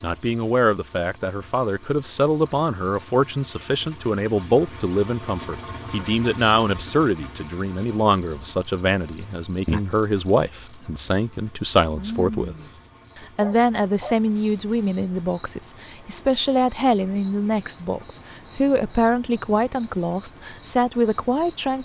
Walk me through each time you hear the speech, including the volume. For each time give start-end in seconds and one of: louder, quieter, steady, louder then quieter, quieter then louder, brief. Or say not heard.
0.0-12.6 steady
13.2-21.8 steady.